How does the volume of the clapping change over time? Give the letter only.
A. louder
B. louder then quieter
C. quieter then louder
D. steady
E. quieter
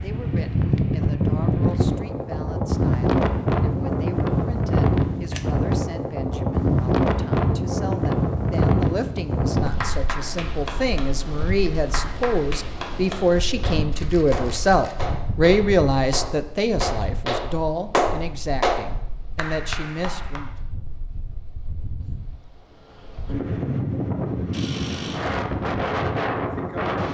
A.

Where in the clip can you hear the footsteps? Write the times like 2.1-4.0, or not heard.
not heard.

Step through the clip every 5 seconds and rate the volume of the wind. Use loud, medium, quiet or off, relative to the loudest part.
loud, loud, quiet, quiet, medium, loud.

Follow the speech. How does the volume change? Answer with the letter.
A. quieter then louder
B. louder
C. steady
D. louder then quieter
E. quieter
D.